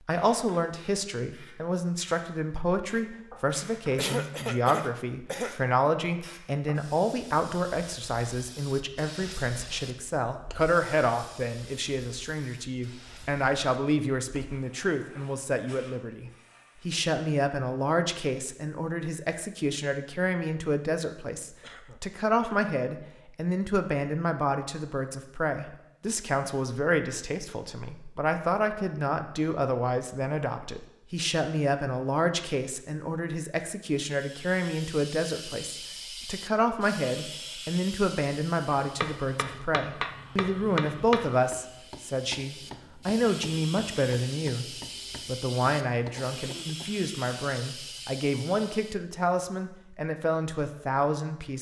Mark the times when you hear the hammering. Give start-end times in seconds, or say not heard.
38.8-46.2.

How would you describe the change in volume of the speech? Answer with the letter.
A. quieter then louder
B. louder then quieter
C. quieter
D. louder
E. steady
E.